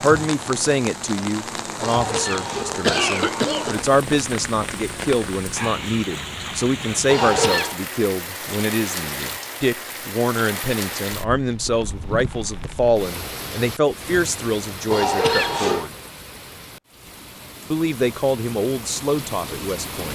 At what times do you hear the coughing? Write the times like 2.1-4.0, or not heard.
1.8-3.8, 7.0-7.8, 14.9-15.9.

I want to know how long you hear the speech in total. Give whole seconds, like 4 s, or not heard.
18 s.